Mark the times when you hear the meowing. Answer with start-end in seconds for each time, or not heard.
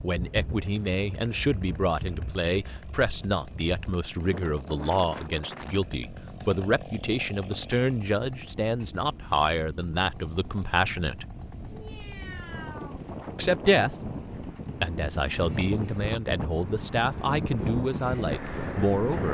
11.7-13.0.